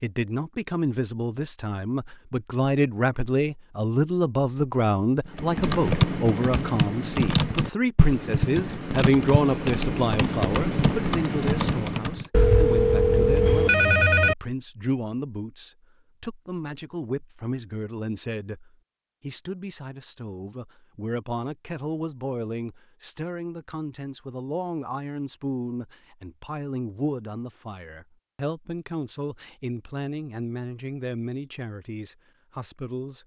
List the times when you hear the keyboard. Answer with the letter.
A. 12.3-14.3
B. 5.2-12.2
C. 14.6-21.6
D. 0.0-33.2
B.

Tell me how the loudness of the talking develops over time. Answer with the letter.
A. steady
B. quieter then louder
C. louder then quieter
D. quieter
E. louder
D.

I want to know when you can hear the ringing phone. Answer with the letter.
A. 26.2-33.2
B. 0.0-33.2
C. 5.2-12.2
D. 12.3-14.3
D.